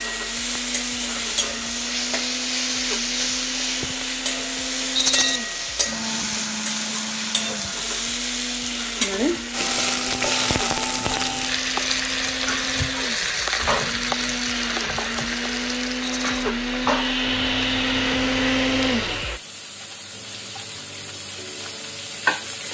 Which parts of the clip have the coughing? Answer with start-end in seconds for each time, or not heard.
not heard.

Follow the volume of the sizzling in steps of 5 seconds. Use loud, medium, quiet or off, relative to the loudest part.
loud, loud, loud, medium, medium.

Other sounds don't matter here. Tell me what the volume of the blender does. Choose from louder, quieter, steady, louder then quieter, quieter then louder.
louder.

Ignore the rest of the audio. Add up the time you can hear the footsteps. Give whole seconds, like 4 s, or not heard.
not heard.